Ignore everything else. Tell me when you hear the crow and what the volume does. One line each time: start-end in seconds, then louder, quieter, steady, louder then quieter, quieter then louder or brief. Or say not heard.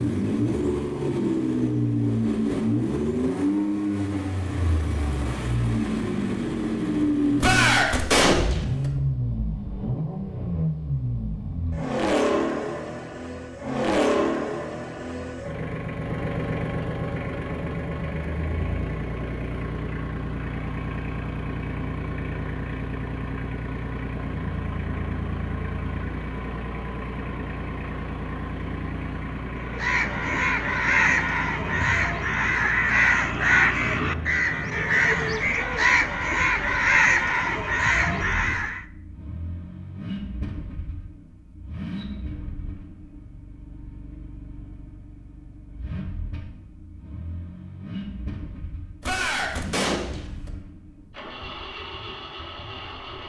29.6-38.9 steady.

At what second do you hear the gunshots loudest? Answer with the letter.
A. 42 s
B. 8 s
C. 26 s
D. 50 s
B.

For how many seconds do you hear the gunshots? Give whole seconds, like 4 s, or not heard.
3 s.